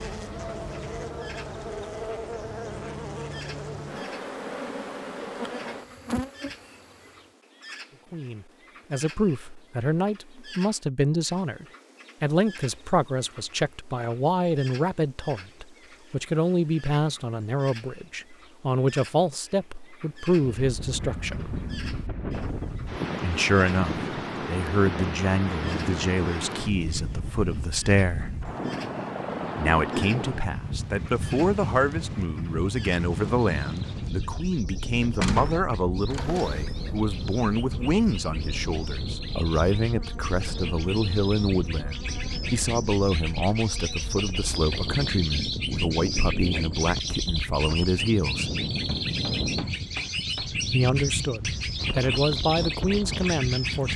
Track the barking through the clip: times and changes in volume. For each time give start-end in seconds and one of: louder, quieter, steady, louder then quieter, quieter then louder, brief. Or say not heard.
not heard.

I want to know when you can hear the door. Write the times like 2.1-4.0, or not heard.
35.1-36.5.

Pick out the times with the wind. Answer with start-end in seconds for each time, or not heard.
20.5-53.9.